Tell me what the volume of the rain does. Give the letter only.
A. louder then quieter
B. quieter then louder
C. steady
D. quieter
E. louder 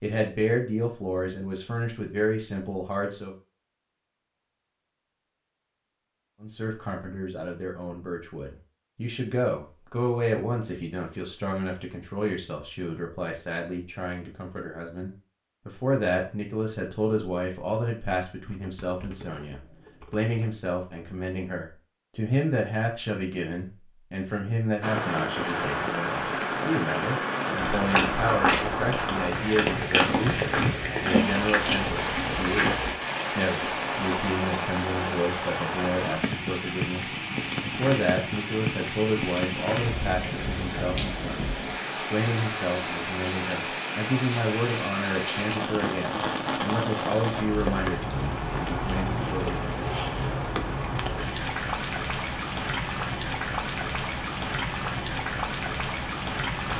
C.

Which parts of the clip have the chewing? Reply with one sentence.
The chewing can be heard from 27.6 to 32.9 s.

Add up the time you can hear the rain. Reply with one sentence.
You can hear the rain for 32 seconds altogether.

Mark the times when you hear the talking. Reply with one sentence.
You can hear the talking from 0.0 to 3.4 s and from 6.4 to 49.8 s.